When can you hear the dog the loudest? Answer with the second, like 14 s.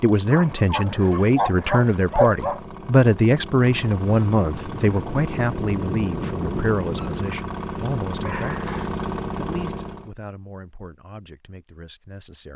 2 s.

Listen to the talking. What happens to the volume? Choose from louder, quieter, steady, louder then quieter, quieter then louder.
quieter.